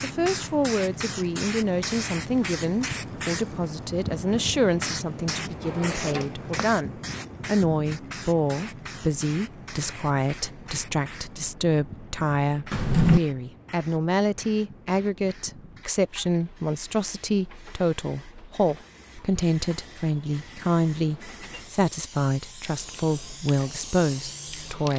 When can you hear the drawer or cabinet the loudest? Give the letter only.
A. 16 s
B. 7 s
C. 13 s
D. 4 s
C.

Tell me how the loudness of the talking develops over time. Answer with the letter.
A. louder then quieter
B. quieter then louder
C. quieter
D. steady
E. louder
D.